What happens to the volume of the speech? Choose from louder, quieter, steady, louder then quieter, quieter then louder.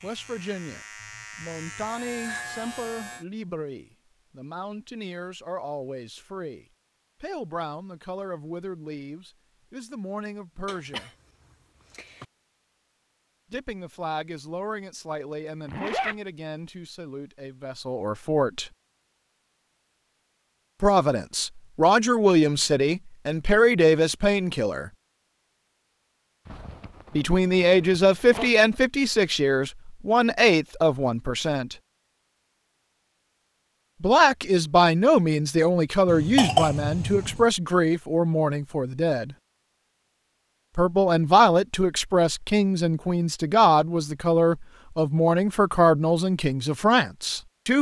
louder.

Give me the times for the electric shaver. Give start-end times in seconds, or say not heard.
0.0-3.2.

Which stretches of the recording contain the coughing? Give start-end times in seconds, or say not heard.
10.7-12.2, 36.0-37.5.